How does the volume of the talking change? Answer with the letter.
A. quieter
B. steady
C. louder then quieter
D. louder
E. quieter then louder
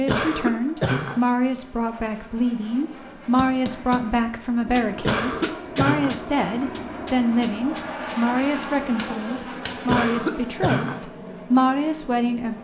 B.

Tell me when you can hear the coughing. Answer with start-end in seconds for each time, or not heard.
0.1-1.2, 5.0-6.2, 9.8-11.0.